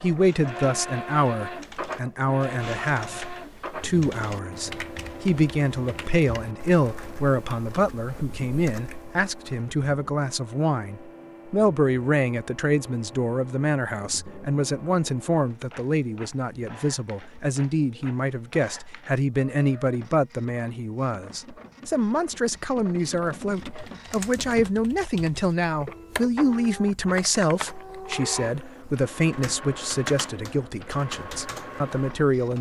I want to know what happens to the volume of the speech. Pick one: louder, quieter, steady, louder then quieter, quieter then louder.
steady.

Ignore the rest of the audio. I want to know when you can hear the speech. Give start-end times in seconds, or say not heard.
0.0-32.5.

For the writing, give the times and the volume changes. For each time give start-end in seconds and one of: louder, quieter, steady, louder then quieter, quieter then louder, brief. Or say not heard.
not heard.